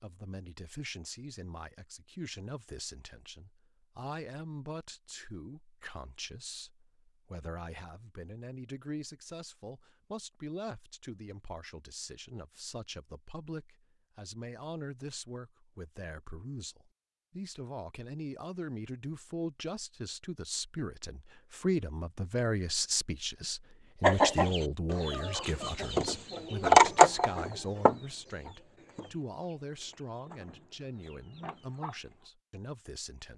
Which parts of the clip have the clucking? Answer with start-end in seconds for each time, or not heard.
24.0-32.1.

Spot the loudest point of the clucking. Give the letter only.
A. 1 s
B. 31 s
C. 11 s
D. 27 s
D.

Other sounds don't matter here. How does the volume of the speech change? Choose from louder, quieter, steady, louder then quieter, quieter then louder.
louder then quieter.